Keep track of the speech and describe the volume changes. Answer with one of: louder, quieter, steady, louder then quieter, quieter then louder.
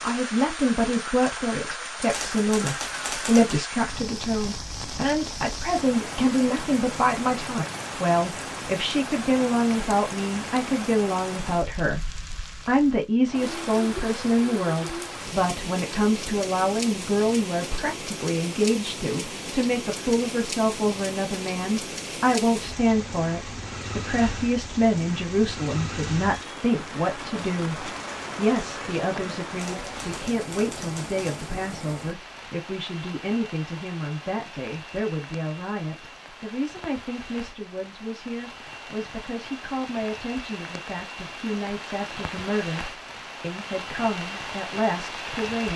quieter.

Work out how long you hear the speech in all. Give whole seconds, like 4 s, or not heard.
46 s.